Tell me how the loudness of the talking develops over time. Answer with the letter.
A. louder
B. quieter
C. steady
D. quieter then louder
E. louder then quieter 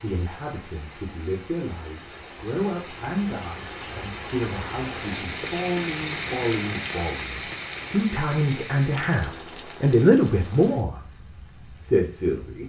A.